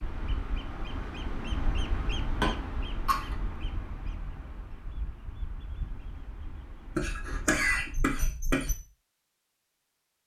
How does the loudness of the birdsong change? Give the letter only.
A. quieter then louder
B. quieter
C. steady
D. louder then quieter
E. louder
B.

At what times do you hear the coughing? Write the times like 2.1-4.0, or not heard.
2.4-3.4, 7.0-8.8.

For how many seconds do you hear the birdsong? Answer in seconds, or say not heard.
8 s.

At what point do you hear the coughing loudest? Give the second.
8 s.